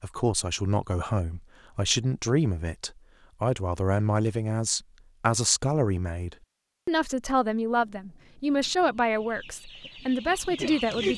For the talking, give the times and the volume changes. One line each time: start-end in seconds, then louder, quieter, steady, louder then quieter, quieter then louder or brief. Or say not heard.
0.0-11.1 steady.